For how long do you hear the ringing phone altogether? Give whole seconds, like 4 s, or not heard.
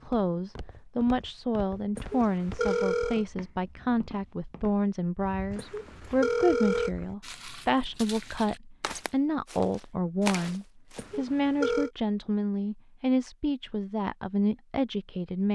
4 s.